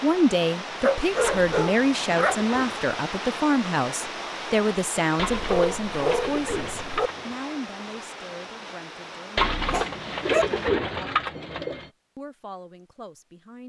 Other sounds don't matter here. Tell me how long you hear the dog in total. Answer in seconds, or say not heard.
4 s.